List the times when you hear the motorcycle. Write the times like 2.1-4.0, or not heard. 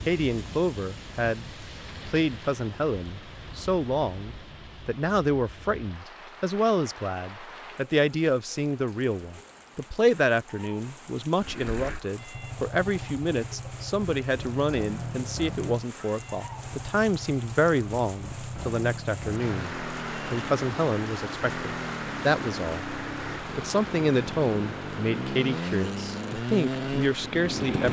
11.3-27.8.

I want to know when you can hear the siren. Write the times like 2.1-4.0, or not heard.
not heard.